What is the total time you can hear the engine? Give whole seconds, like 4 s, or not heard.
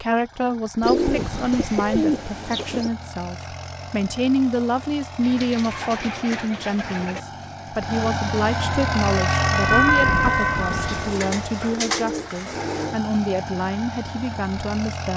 15 s.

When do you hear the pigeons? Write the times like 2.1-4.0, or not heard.
0.8-2.9, 5.2-7.2, 10.7-12.9.